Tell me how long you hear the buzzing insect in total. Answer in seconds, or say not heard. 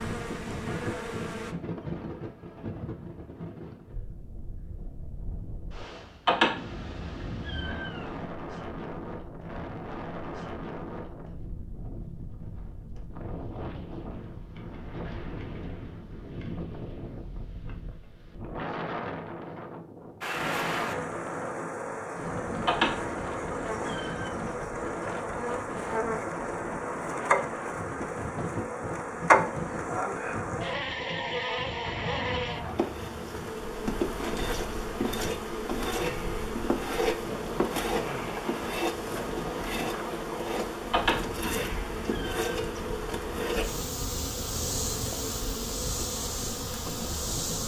29 s.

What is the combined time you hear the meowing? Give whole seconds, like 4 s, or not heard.
6 s.